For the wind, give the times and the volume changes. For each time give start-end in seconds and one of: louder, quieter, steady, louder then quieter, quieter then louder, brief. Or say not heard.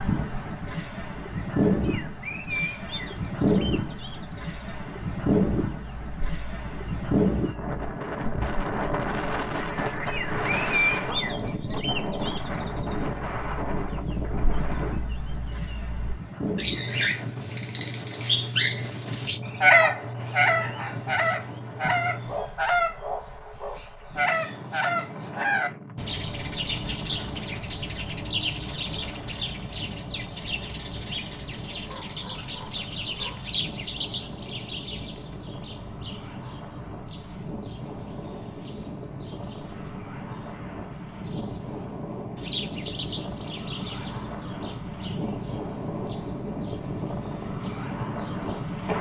0.0-48.9 quieter then louder.